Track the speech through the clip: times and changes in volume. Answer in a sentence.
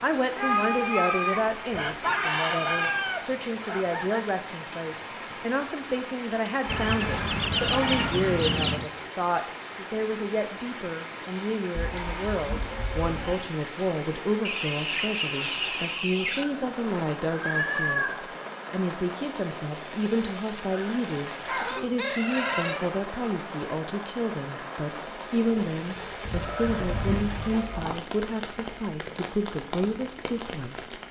You can hear the speech from 0.0 to 31.0 s, at a steady volume.